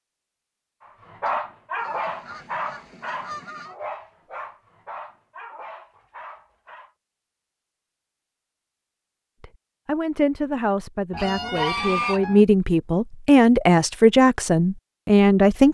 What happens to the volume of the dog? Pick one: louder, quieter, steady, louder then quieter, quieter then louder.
quieter.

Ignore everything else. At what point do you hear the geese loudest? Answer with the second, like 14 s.
12 s.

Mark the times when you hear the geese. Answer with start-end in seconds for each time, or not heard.
1.2-3.8, 11.1-12.4.